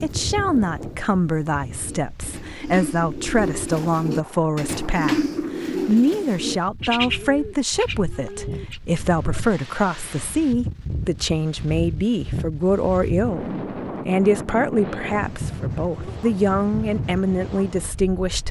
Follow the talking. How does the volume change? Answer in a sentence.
The volume of the talking stays about the same.